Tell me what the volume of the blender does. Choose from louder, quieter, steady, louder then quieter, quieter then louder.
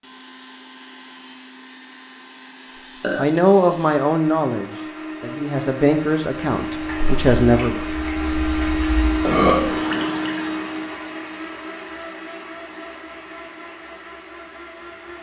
louder then quieter.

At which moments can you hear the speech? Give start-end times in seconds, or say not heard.
3.1-7.8.